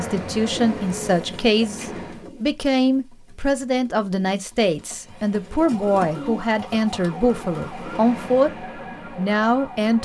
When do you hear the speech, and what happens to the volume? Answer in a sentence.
The speech can be heard from 0.0 to 9.9 s, at a steady volume.